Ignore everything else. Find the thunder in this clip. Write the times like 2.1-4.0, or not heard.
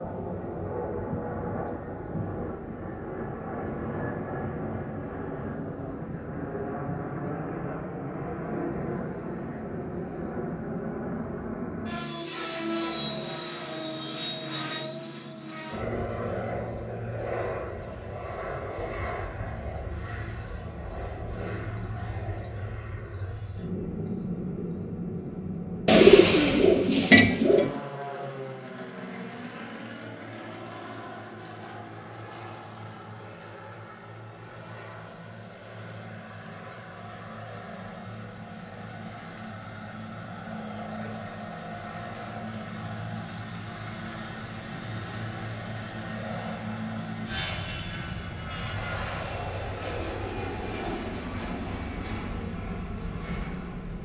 not heard.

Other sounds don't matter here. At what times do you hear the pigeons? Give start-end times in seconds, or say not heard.
25.9-27.8.